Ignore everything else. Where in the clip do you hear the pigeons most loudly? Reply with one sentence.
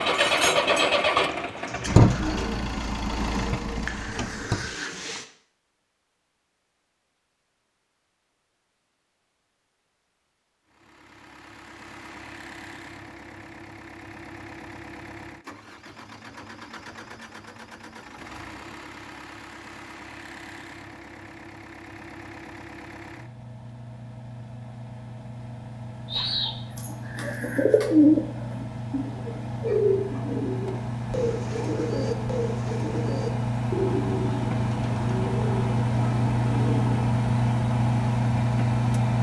The volume of the pigeons peaks at 28 seconds.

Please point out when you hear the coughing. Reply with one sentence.
The coughing can't be heard in this clip.